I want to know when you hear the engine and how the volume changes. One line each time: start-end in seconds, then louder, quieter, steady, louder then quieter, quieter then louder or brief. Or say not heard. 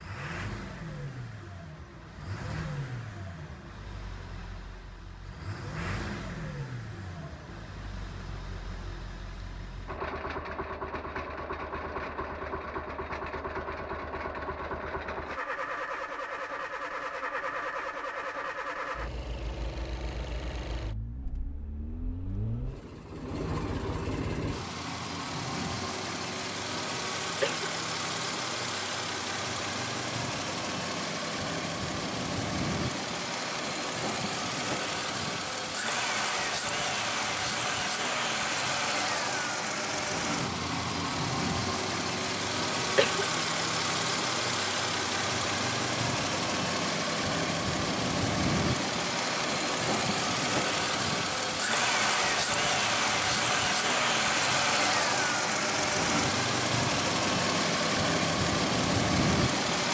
0.0-59.8 louder.